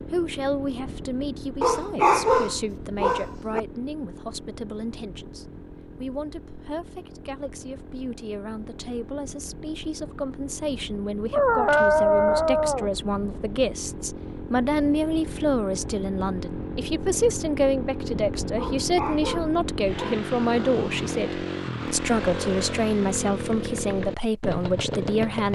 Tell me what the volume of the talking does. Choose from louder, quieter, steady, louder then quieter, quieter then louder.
louder.